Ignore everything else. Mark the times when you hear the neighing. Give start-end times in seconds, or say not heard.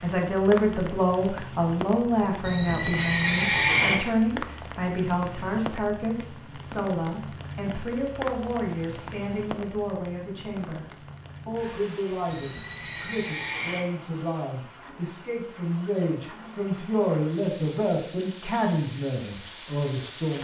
2.4-4.0, 12.2-13.8.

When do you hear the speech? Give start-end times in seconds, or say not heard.
0.0-10.8, 11.4-20.3.